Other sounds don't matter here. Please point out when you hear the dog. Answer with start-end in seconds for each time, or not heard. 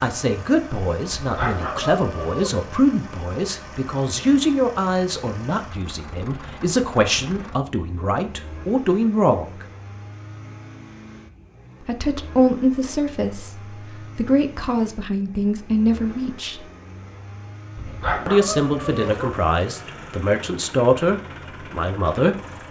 1.2-2.6, 17.8-19.4.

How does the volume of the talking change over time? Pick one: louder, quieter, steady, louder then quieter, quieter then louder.
steady.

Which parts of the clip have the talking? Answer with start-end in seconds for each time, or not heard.
0.0-9.7, 11.8-16.6, 18.2-22.6.